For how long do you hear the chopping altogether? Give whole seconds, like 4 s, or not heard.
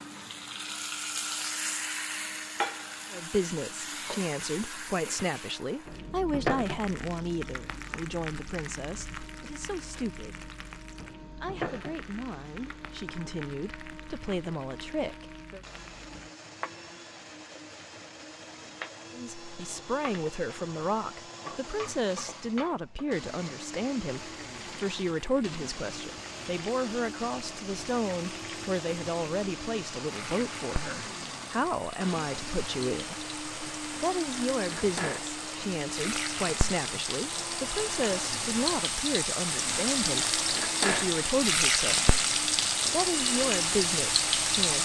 not heard.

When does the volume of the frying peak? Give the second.
42 s.